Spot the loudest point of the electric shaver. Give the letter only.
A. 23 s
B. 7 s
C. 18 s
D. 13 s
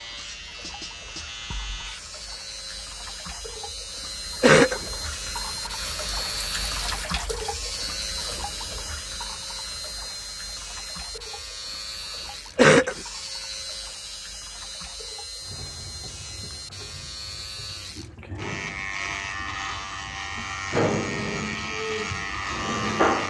A.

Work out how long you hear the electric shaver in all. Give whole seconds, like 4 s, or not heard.
23 s.